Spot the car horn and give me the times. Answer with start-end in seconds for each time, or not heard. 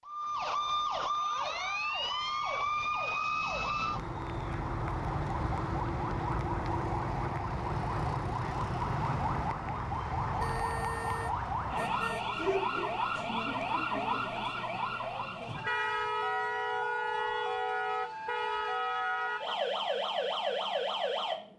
10.4-12.3.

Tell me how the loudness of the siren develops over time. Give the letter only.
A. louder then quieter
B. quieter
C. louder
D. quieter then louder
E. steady
E.